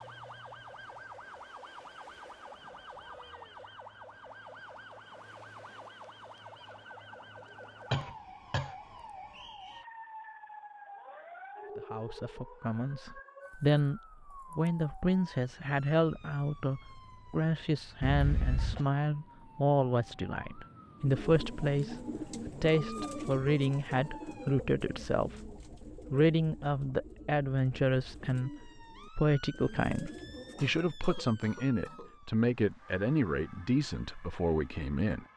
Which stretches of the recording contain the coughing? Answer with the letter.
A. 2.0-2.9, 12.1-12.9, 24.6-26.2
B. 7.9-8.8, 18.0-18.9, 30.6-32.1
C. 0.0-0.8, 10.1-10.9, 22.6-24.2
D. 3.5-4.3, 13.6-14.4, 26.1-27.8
B.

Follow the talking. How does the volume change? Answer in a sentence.
The volume of the talking stays about the same.